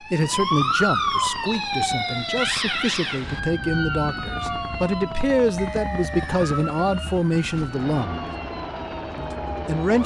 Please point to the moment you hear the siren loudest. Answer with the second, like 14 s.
1 s.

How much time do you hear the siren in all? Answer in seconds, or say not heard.
10 s.